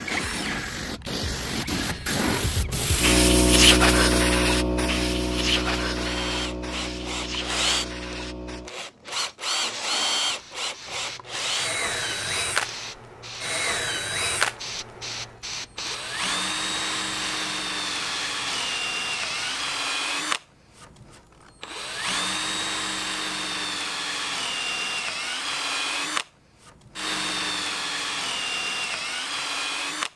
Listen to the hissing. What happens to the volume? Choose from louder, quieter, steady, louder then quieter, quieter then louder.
quieter.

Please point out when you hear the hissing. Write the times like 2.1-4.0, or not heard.
0.0-19.8.